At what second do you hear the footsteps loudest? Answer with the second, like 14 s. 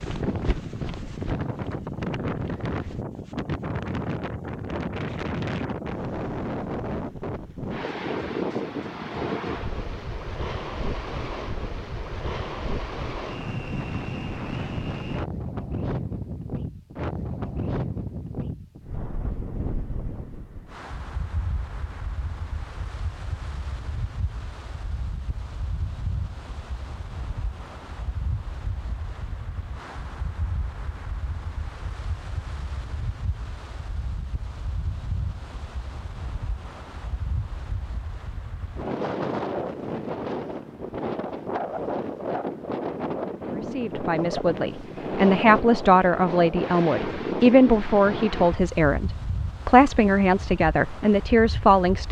1 s.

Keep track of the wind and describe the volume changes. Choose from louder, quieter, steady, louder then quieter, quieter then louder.
quieter then louder.